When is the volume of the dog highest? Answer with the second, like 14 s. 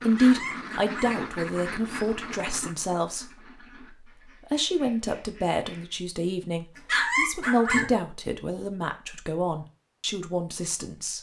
7 s.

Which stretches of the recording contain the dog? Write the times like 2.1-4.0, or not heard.
0.1-1.1, 6.8-7.8.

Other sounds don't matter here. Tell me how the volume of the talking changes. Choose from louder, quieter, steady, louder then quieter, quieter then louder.
quieter.